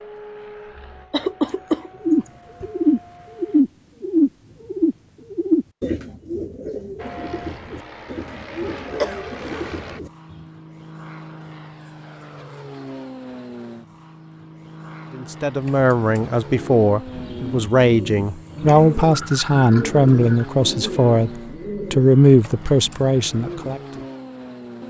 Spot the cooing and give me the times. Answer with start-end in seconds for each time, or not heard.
2.0-10.4, 15.6-24.1.